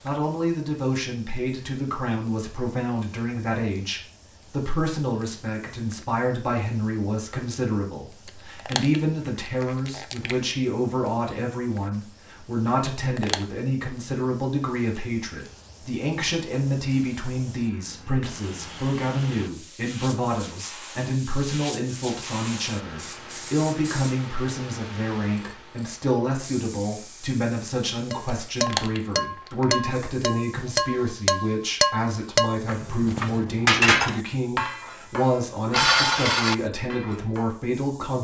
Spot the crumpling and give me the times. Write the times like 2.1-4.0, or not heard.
8.2-10.6, 12.9-13.4, 28.5-29.8.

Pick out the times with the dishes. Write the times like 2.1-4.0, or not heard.
28.1-37.5.